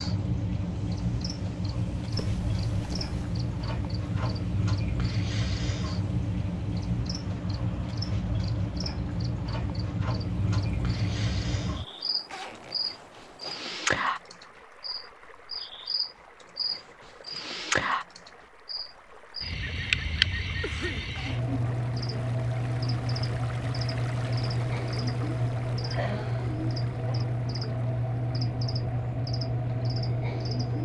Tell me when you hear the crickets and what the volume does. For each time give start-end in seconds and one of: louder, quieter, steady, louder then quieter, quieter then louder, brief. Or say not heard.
0.0-30.8 steady.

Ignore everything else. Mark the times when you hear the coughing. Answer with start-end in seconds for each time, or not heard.
20.6-21.1.